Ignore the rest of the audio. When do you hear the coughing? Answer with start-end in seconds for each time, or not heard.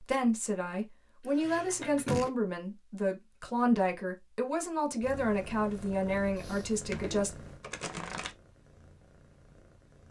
1.2-2.3, 6.3-7.2.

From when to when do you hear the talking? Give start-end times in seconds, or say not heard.
0.0-7.3.